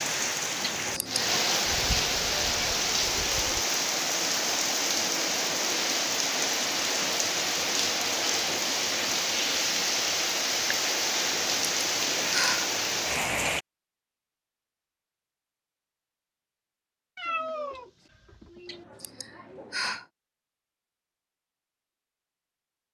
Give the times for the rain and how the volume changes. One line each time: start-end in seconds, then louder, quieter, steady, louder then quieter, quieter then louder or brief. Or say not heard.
0.0-13.7 steady.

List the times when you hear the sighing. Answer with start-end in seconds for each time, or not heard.
0.6-1.6, 11.4-12.8, 18.6-20.1.